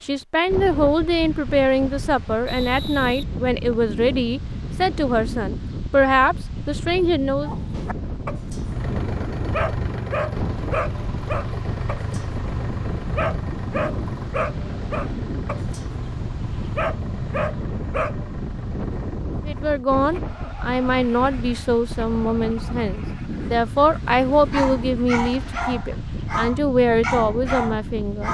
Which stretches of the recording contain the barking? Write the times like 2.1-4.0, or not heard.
7.4-18.4, 24.5-28.2.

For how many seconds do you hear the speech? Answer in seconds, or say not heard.
16 s.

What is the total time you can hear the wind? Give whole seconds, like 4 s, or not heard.
28 s.